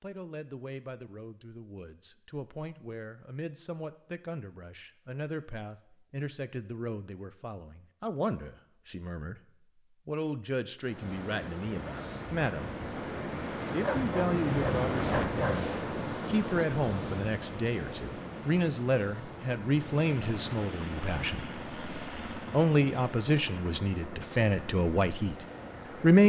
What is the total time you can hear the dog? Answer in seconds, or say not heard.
2 s.